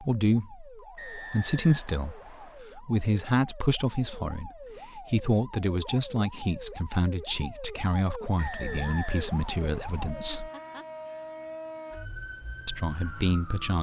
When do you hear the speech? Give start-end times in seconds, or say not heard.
0.0-10.5, 12.7-13.7.